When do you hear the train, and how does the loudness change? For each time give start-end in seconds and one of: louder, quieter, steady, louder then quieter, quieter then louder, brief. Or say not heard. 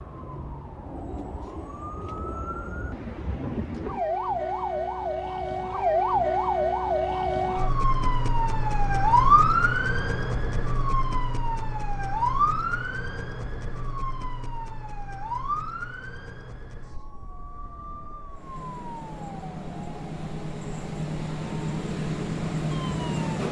18.3-23.4 louder.